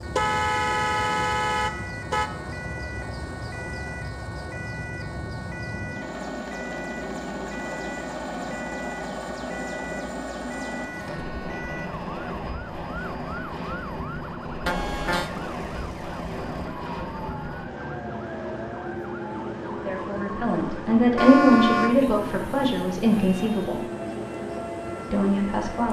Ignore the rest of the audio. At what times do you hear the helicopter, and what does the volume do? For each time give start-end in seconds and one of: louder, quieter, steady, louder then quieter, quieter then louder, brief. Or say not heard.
0.0-25.8 steady.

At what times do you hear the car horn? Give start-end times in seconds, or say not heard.
0.1-2.3, 14.7-15.3, 21.1-21.9.